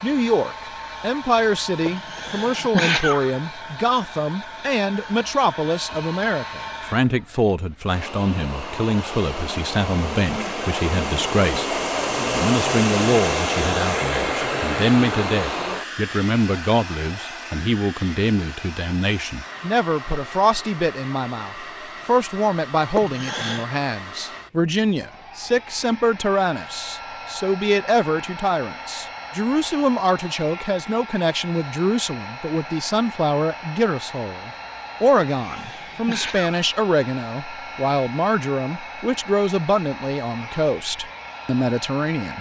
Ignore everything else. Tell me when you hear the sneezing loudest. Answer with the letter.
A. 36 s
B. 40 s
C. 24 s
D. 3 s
D.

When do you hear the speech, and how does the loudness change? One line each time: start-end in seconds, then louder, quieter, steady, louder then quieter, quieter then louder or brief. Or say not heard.
0.0-42.3 steady.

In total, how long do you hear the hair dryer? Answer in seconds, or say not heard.
42 s.